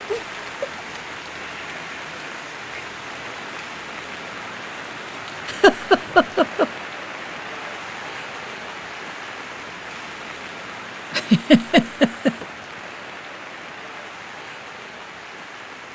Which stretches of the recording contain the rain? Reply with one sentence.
You can hear the rain from 0.0 to 15.8 s.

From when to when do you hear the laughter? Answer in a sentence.
You can hear the laughter from 0.1 to 0.8 s, from 5.5 to 6.7 s and from 11.1 to 12.4 s.